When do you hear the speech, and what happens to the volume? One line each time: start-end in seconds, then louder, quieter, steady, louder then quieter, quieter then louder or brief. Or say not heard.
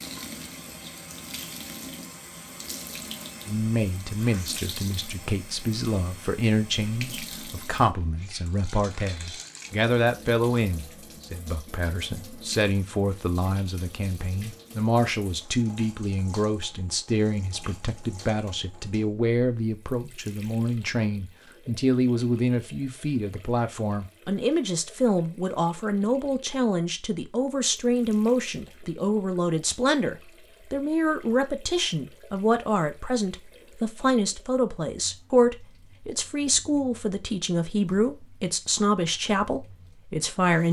3.5-40.6 steady.